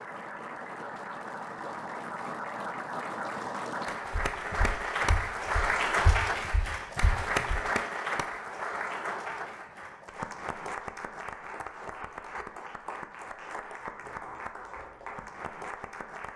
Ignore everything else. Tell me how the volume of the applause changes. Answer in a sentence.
The volume of the applause goes up, then down.